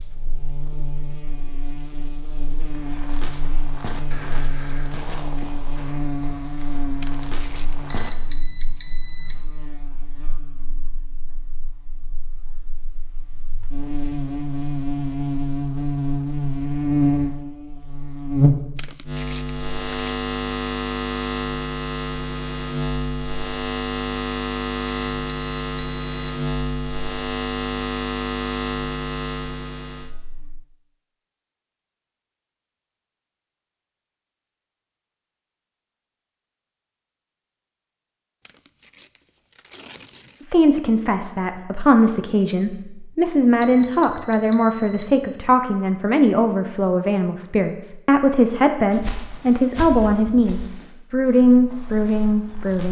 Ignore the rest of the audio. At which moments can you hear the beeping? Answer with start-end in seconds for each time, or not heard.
7.9-9.4, 24.9-26.4, 43.6-45.1.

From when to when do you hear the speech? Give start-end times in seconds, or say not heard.
40.5-52.8.